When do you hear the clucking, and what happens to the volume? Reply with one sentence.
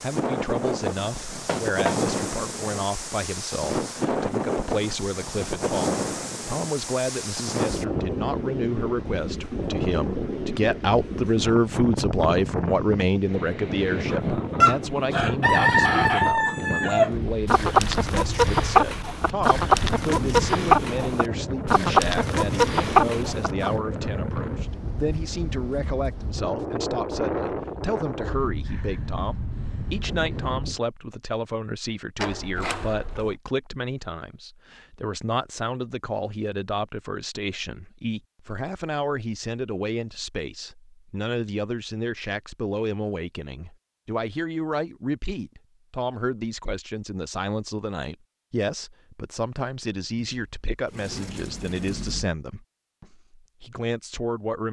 The clucking can be heard from 14.1 to 23.7 s, at a steady volume.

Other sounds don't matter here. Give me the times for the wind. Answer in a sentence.
The wind can be heard from 0.0 to 30.8 s.